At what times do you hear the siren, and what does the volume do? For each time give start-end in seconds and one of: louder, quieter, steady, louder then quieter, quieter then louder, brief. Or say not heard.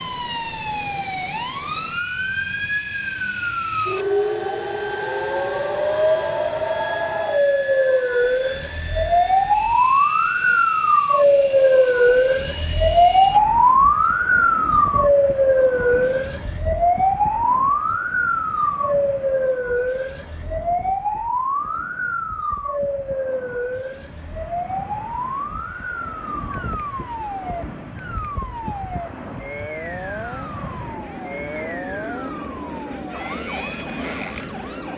0.0-34.9 louder then quieter.